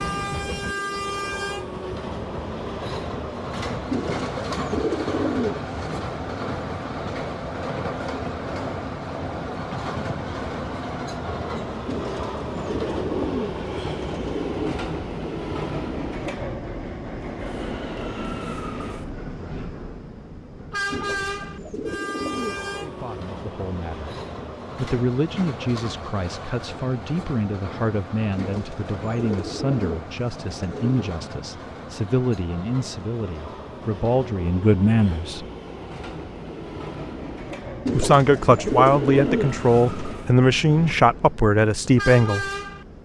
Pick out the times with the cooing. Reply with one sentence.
You can hear the cooing from 3.9 to 6.0 s, from 11.8 to 14.8 s, from 20.9 to 22.6 s, from 28.4 to 31.1 s and from 37.9 to 40.1 s.